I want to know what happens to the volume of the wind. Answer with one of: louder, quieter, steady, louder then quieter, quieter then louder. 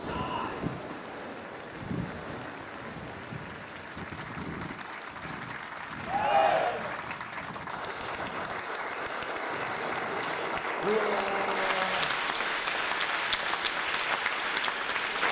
quieter.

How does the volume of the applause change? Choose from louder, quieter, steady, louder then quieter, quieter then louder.
louder.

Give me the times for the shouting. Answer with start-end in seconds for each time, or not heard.
0.1-0.7, 6.0-7.0, 10.8-12.1.